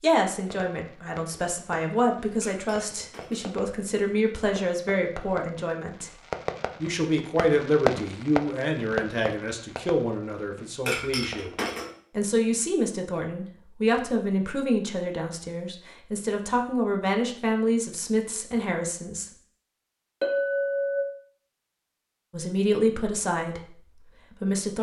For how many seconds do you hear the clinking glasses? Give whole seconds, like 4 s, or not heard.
3 s.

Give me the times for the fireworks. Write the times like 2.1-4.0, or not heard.
0.3-11.6.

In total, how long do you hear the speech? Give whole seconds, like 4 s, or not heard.
20 s.